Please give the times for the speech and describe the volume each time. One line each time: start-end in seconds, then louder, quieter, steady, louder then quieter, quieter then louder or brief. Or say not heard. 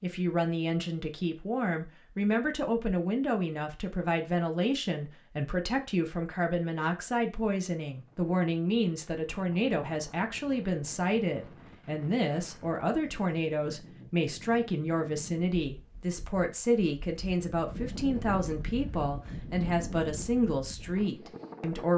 0.0-21.9 steady.